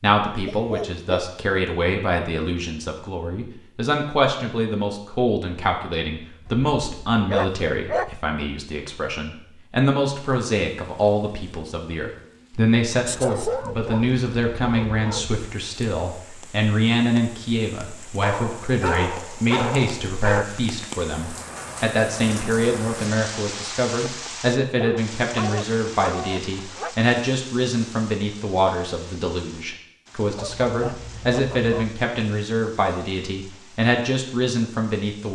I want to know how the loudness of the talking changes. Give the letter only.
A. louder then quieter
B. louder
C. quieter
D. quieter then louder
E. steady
E.